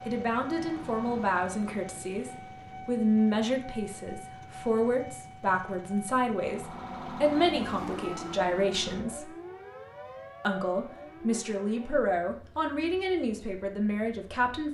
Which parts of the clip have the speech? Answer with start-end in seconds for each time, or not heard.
0.0-9.3, 10.4-14.6.